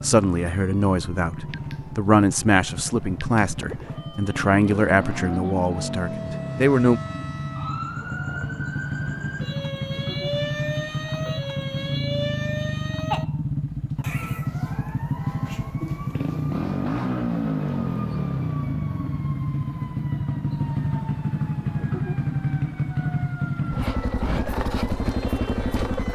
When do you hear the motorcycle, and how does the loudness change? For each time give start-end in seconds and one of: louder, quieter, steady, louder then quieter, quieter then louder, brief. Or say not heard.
0.0-26.1 louder.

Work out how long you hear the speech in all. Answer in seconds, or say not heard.
7 s.